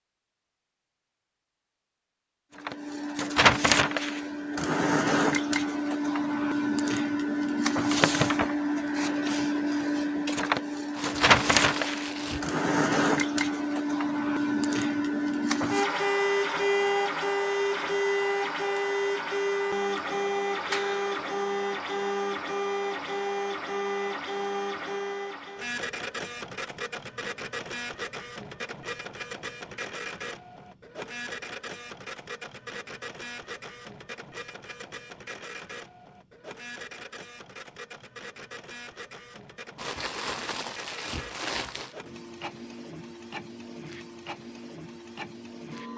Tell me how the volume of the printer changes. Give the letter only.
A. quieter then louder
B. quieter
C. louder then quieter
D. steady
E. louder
B.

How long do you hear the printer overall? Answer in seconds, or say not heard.
43 s.